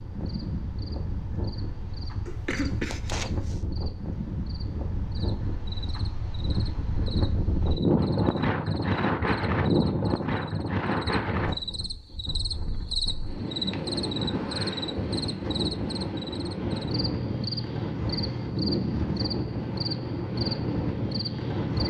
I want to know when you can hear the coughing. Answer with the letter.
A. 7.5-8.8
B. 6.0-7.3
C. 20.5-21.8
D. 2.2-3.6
D.